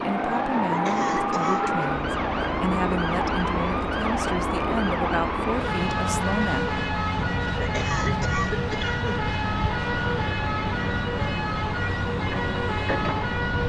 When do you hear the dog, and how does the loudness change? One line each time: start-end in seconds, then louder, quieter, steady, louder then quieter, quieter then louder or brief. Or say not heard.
not heard.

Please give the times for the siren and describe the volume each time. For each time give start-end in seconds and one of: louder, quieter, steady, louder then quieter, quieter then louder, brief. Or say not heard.
0.0-13.6 steady.